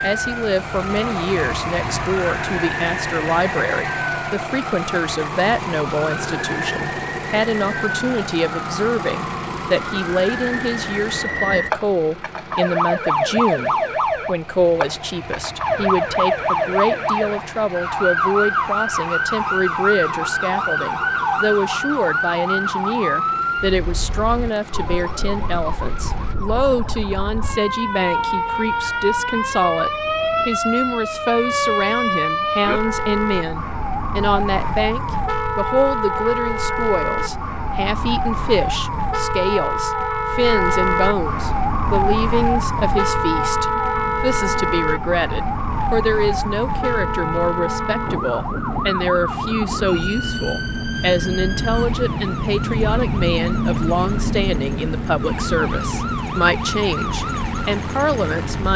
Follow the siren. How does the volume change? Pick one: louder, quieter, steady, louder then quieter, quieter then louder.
louder then quieter.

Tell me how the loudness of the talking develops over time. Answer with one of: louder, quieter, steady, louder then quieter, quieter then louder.
steady.